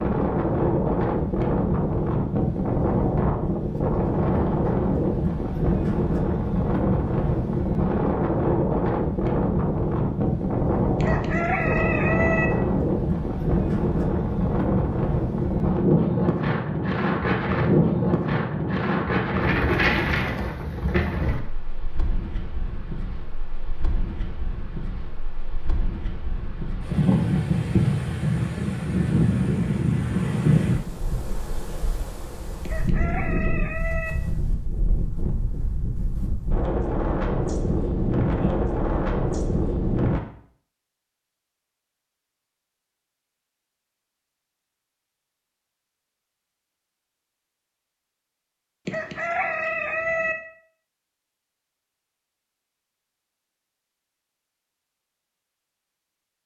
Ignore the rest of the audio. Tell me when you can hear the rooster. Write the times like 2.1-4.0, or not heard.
11.0-12.5, 32.6-34.1, 48.9-50.4.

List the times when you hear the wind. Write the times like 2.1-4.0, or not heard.
0.0-40.2.